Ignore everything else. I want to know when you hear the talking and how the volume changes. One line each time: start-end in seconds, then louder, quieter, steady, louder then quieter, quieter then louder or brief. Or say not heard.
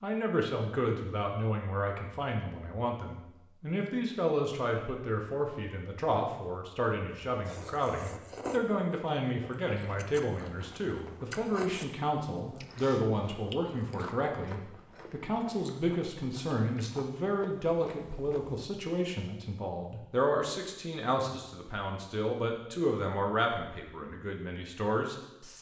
0.0-25.5 steady.